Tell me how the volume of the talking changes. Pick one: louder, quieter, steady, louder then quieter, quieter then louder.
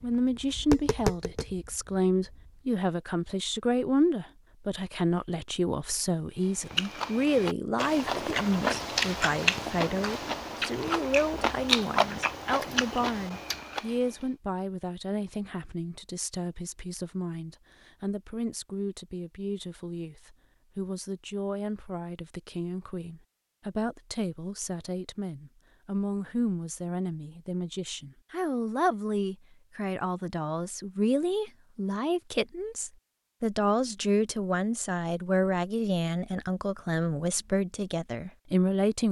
quieter then louder.